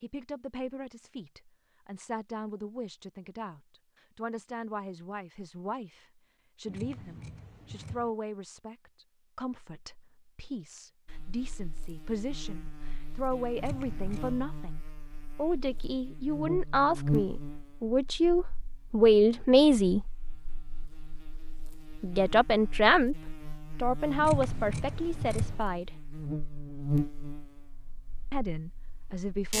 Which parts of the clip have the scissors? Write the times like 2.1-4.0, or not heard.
6.7-8.1, 13.6-14.4, 24.1-25.6.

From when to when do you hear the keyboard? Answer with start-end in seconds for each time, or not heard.
not heard.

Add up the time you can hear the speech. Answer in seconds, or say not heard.
25 s.